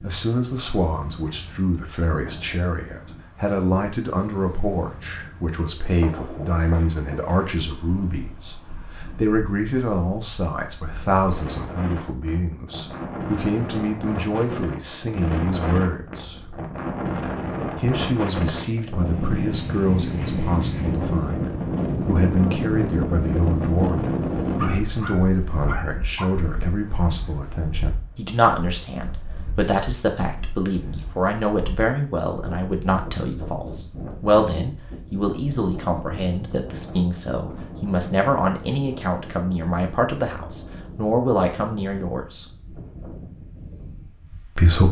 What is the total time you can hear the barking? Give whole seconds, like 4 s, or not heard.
2 s.